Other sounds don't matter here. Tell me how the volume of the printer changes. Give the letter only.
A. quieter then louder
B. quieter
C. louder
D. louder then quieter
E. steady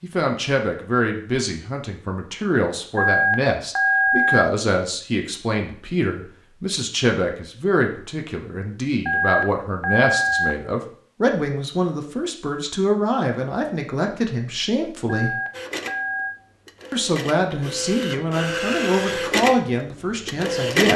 D.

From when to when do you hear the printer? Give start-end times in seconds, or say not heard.
15.5-20.9.